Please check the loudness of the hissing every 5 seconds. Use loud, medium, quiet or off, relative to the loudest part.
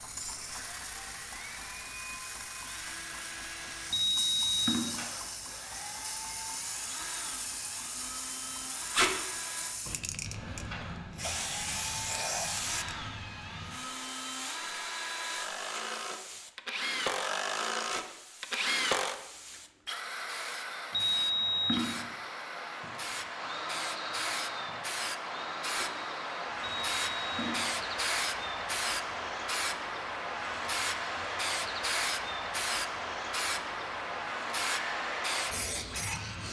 medium, medium, medium, quiet, medium, loud, loud, loud.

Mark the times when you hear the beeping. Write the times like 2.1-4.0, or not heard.
3.9-5.0, 20.9-22.0, 26.6-27.7.